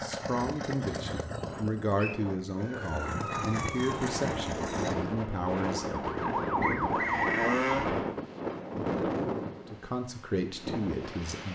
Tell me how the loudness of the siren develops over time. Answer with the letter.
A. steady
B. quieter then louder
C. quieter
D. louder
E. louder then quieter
D.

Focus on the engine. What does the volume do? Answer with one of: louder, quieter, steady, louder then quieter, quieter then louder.
quieter then louder.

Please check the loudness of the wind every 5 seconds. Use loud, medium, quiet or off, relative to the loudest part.
medium, loud, medium.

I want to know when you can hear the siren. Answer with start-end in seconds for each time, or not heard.
2.5-8.2.